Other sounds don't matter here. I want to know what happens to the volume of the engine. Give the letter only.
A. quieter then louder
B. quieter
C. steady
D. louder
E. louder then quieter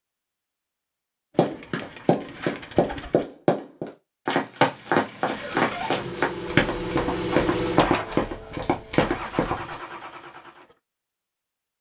E.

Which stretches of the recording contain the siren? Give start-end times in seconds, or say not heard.
not heard.